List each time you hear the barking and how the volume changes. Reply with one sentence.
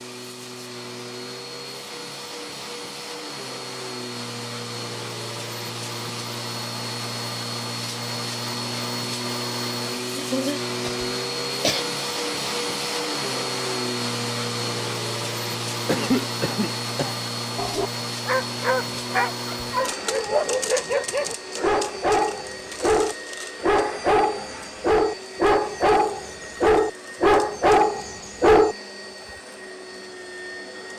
The barking can be heard from 17.6 to 28.8 s, getting louder.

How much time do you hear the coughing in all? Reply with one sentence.
You can hear the coughing for 3 seconds altogether.